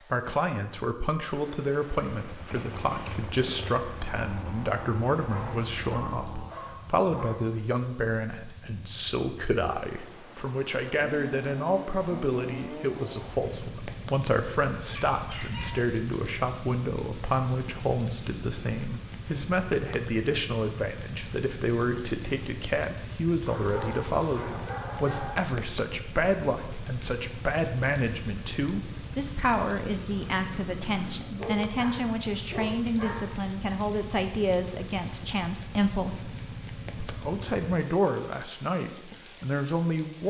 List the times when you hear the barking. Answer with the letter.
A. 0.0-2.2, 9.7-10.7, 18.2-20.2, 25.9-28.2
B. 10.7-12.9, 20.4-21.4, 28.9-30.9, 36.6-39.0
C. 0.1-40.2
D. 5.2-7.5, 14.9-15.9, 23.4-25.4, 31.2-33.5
D.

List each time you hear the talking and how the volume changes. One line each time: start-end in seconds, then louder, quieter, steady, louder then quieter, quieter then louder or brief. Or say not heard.
0.1-40.2 steady.